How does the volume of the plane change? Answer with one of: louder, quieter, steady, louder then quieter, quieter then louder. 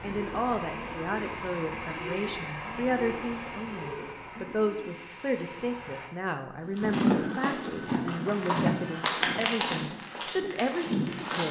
quieter.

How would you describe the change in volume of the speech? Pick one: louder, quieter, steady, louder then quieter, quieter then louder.
steady.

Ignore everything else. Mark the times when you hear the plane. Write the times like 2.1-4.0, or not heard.
0.0-6.1.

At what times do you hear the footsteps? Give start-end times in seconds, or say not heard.
6.7-11.4.